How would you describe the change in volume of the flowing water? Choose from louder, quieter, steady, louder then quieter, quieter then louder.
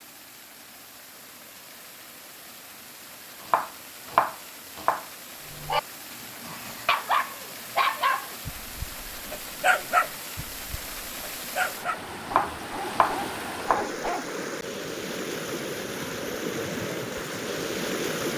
louder.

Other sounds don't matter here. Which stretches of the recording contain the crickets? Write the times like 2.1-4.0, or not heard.
not heard.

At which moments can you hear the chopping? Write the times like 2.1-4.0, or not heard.
3.4-5.0, 12.2-13.8.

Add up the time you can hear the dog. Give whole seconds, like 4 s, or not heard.
9 s.